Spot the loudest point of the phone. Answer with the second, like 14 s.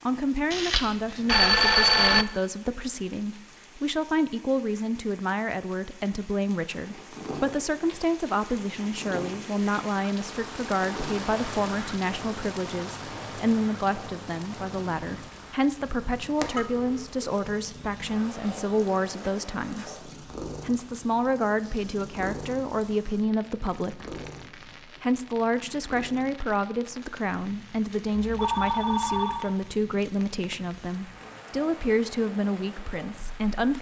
2 s.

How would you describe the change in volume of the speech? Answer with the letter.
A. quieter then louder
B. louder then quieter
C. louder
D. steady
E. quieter
D.